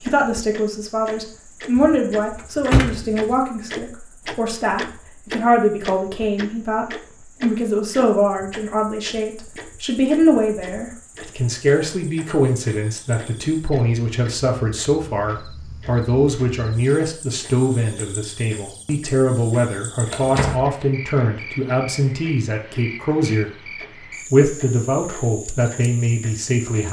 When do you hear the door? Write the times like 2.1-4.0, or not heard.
1.8-3.4, 20.1-20.7.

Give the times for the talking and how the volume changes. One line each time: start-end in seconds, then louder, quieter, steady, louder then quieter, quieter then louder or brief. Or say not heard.
0.0-23.5 steady
24.3-26.8 brief.